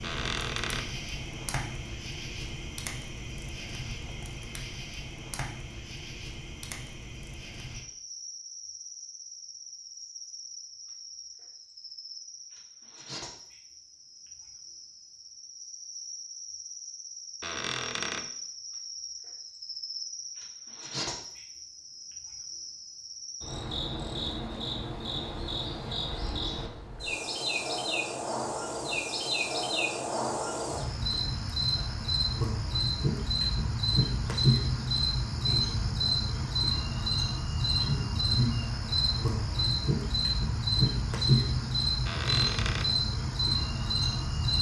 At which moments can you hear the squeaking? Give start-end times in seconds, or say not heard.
0.0-0.9, 17.4-18.3, 42.0-43.0.